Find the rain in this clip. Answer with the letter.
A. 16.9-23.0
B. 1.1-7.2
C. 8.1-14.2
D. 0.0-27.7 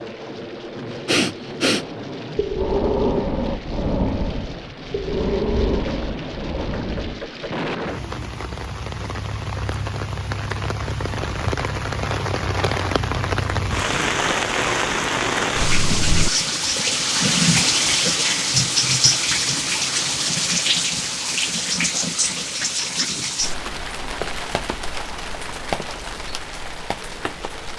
D.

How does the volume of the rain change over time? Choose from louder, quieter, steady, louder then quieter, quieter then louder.
louder then quieter.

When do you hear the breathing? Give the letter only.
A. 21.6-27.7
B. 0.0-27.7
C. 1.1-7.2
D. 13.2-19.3
C.